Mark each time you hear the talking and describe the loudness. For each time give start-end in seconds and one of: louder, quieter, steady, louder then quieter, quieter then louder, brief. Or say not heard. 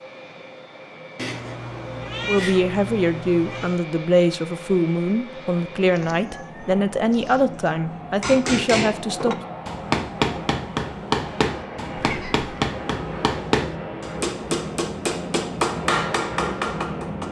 2.2-9.3 steady.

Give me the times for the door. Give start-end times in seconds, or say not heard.
not heard.